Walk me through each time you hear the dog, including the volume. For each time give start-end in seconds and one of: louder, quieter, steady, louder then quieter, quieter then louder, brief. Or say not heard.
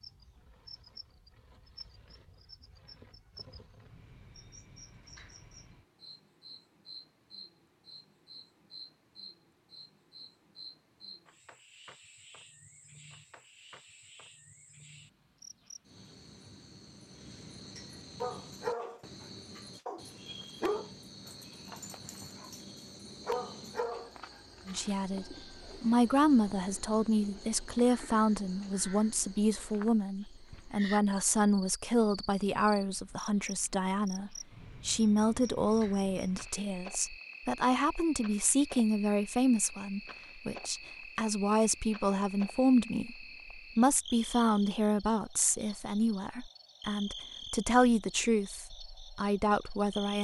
18.2-24.8 quieter then louder.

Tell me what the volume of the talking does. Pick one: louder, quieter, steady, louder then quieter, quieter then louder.
steady.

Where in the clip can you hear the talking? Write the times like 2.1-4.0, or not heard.
24.6-50.1.